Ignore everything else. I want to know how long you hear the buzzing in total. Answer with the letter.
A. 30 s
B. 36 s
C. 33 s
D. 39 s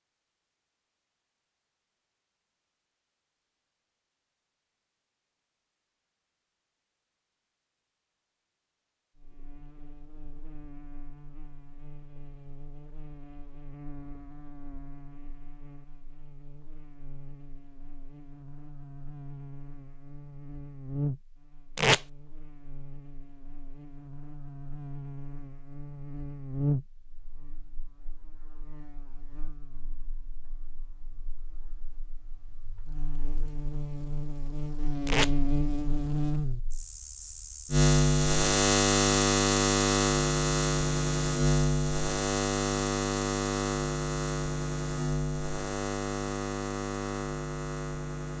D.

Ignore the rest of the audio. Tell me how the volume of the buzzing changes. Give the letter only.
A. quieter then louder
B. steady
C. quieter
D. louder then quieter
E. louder
E.